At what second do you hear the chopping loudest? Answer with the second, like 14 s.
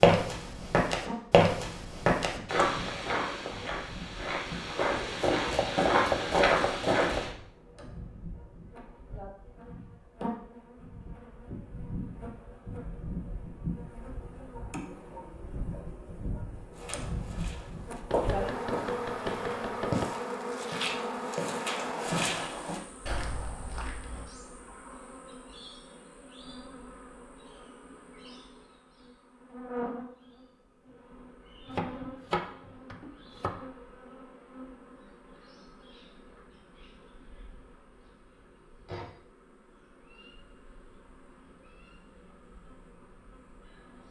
6 s.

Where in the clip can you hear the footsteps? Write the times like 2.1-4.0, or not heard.
0.0-7.3, 16.8-24.3.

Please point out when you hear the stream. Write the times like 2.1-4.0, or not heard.
not heard.